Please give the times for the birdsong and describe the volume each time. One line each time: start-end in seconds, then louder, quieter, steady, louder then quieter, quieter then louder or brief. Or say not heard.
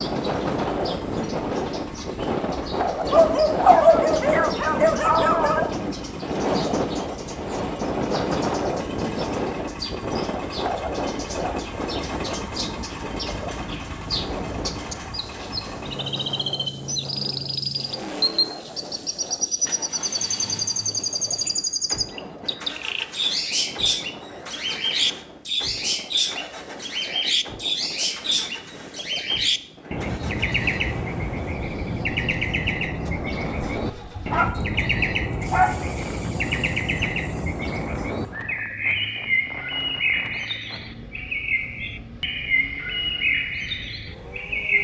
0.0-44.7 louder.